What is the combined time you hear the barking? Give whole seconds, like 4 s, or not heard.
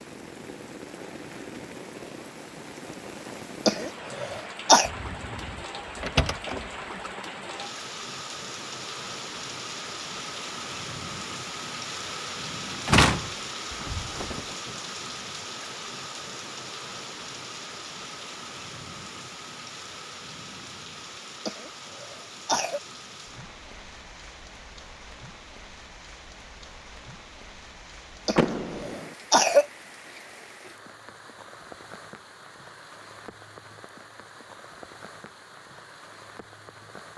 not heard.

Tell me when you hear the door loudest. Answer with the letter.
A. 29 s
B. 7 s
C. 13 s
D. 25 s
C.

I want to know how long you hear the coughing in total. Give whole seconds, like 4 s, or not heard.
4 s.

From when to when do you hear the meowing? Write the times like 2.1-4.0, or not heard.
not heard.